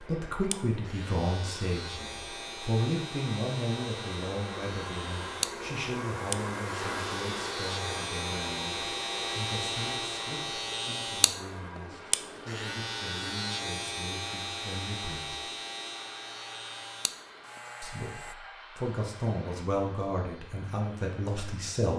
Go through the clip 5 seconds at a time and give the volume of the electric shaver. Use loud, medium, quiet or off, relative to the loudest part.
medium, loud, loud, medium, off.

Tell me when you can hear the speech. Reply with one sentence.
You can hear the speech from 0.0 to 15.5 s and from 17.8 to 21.9 s.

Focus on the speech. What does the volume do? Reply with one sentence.
The loudness of the speech goes down, then up.